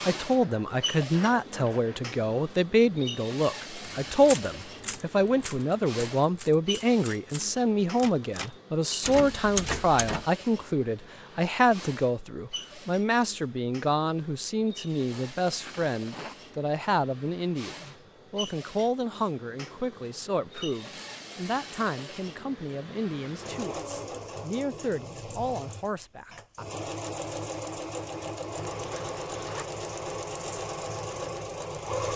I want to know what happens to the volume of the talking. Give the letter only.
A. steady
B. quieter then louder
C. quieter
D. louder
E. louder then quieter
C.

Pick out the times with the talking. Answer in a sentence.
The talking can be heard from 0.0 to 26.6 s.